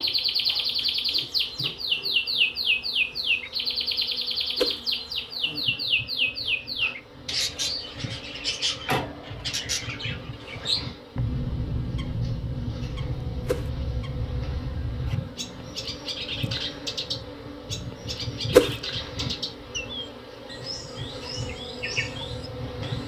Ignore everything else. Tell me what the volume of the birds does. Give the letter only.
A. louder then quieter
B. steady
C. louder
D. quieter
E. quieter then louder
D.